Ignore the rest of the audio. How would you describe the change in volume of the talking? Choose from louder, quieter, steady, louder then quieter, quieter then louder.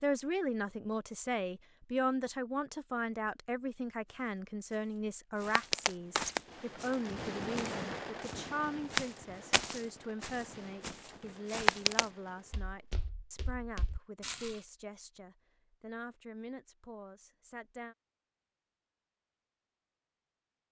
quieter.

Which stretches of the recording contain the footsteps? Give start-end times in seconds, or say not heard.
4.0-14.6.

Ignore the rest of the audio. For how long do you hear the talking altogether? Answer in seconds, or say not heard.
18 s.